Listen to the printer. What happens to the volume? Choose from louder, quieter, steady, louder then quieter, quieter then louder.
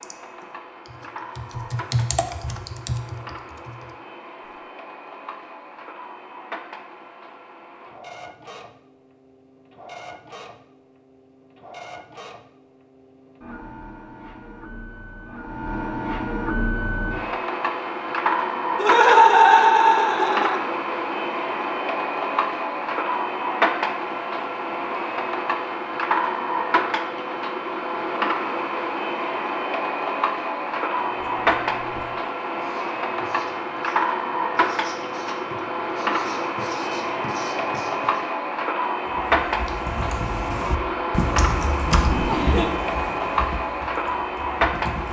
louder.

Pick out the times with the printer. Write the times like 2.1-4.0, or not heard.
0.0-45.0.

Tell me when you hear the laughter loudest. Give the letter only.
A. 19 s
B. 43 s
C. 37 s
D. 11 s
A.